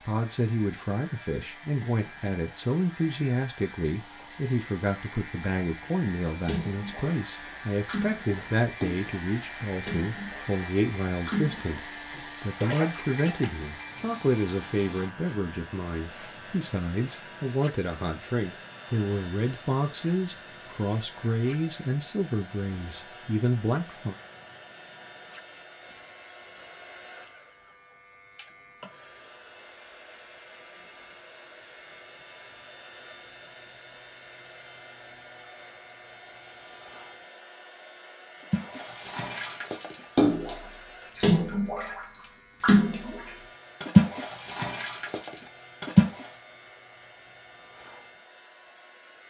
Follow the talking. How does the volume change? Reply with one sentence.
The loudness of the talking stays about the same.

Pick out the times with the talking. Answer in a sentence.
The talking can be heard from 0.1 to 24.1 s.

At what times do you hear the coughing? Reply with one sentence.
The coughing can't be heard in this clip.